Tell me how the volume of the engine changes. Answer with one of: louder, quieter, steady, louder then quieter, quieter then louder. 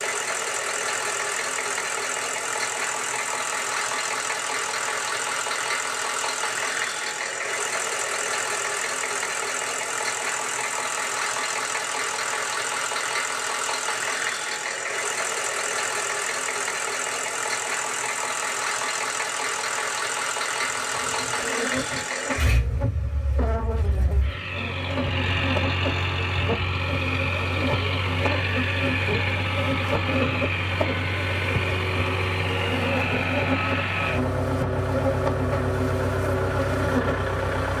steady.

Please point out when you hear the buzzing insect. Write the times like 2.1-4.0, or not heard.
20.6-37.7.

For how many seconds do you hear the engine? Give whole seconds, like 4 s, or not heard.
38 s.